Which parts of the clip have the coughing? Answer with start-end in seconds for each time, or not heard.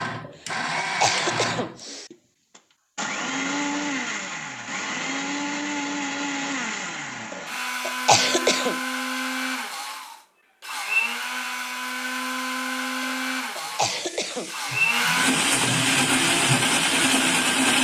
0.2-2.1, 7.3-8.8, 13.0-14.8.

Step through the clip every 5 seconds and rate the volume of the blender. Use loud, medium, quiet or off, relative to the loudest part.
medium, medium, medium, loud.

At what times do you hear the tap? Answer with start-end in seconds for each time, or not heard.
13.6-17.5.